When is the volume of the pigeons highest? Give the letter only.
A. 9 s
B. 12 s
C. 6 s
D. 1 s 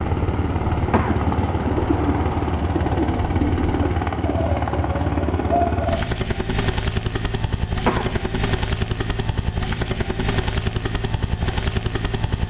C.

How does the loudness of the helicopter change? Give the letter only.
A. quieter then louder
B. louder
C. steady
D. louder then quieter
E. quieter
C.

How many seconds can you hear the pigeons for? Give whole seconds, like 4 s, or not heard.
6 s.